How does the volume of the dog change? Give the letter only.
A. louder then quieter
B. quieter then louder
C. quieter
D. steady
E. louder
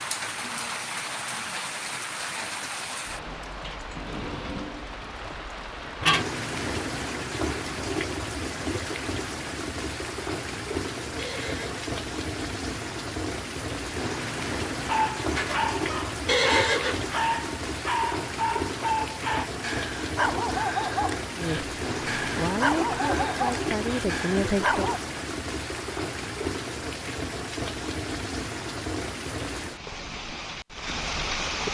D.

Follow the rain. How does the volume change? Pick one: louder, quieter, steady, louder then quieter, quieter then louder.
steady.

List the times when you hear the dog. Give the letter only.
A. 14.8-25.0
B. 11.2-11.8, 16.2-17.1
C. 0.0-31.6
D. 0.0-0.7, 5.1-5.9
A.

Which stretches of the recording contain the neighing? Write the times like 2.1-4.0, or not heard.
11.2-11.8, 16.2-17.1.